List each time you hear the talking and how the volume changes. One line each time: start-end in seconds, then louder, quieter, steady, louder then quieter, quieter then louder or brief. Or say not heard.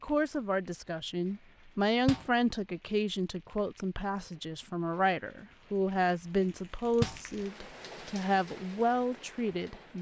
0.0-9.9 steady.